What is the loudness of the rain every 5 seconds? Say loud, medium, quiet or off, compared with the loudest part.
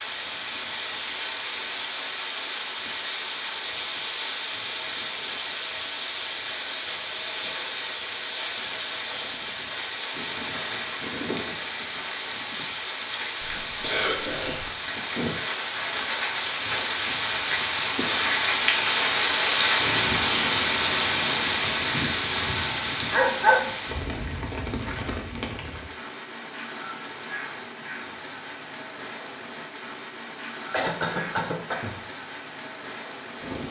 medium, medium, medium, loud, loud, medium, medium.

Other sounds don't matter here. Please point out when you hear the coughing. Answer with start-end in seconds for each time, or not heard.
13.4-14.7, 30.7-31.9.